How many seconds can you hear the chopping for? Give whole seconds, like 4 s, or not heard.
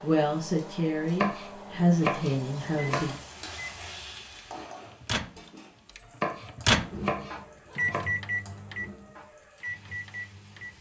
4 s.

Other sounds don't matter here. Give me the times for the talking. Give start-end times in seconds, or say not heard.
0.0-3.1.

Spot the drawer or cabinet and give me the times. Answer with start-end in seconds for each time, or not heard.
not heard.